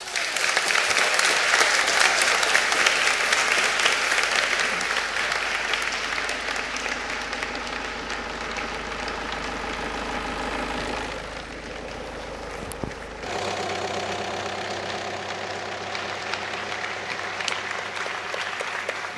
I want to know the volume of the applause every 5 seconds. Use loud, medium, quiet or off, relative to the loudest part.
loud, medium, quiet, medium.